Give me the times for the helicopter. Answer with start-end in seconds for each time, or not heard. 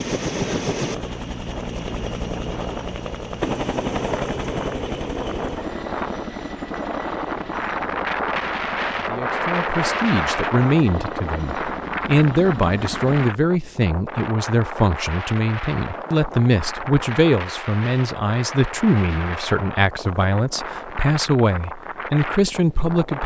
0.0-13.3.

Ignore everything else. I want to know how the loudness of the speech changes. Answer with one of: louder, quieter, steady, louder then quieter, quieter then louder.
steady.